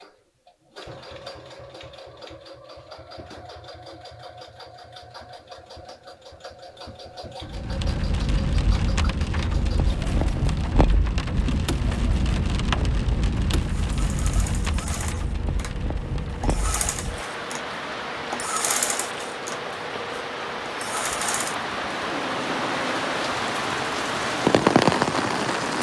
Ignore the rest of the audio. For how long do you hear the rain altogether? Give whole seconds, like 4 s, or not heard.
18 s.